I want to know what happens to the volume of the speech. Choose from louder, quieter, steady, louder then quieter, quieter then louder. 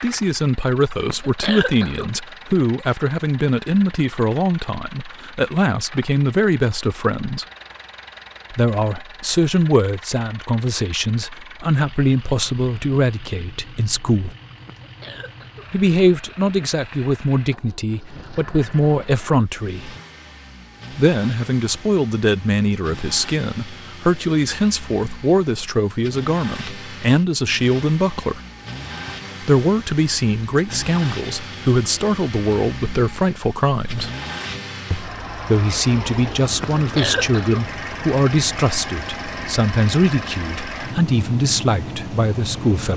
steady.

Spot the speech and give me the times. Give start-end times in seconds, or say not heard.
0.0-7.5, 8.5-14.3, 15.7-19.9, 20.9-28.4, 29.4-34.1, 34.9-42.9.